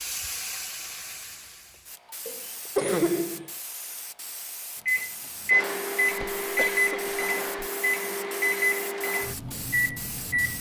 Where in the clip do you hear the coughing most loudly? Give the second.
3 s.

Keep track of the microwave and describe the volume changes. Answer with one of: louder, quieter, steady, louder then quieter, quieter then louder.
quieter.